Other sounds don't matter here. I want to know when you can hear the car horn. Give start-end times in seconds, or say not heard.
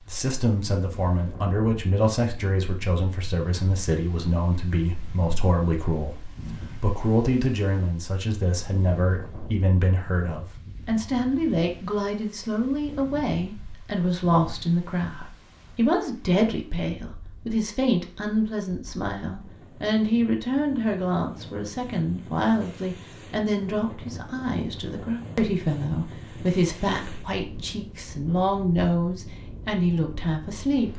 not heard.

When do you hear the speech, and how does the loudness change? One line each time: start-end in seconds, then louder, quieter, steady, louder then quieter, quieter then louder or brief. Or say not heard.
0.1-30.9 steady.